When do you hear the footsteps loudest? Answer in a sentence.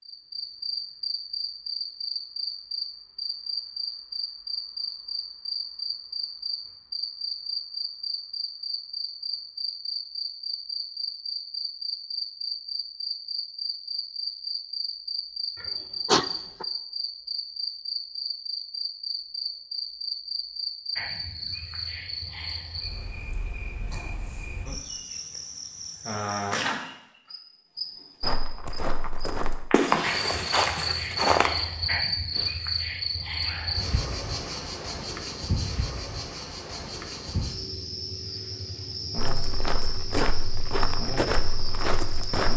The volume of the footsteps peaks at 31 seconds.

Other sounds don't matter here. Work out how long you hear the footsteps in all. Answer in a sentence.
You can hear the footsteps for 7 seconds altogether.